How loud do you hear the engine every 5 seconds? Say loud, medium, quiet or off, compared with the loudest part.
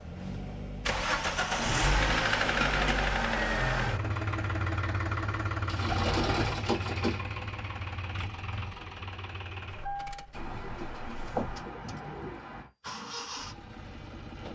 loud, medium, quiet.